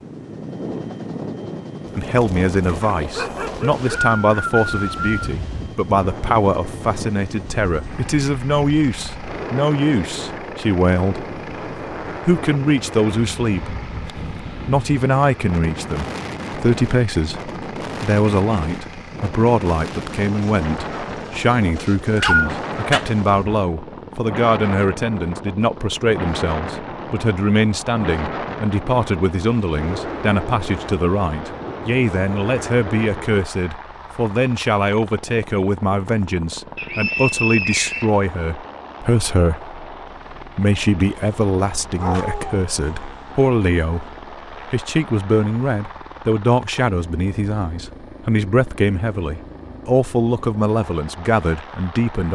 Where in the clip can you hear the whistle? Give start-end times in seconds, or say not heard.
3.5-5.3, 21.8-22.5, 36.8-38.1.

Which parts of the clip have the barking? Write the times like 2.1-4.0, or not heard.
2.6-3.9, 22.1-23.1, 42.0-43.3.